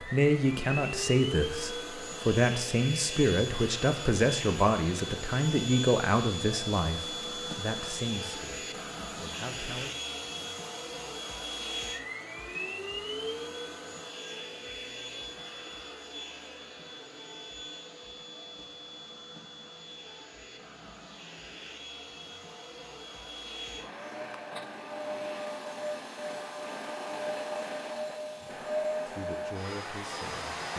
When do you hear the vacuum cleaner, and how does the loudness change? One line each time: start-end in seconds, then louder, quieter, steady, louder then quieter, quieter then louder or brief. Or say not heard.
0.0-30.7 quieter then louder.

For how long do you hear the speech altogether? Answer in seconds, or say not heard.
12 s.